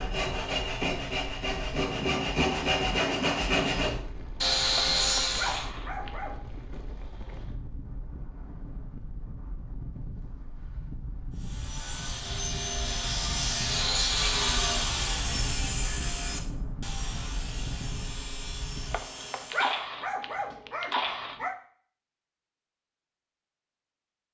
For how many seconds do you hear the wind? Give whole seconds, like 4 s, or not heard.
19 s.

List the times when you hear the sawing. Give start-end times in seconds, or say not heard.
0.0-5.7, 11.3-19.9.